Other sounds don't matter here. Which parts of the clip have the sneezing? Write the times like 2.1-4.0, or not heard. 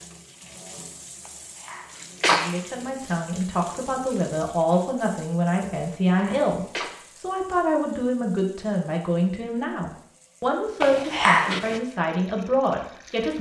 1.6-2.6, 5.8-6.9, 10.8-11.8.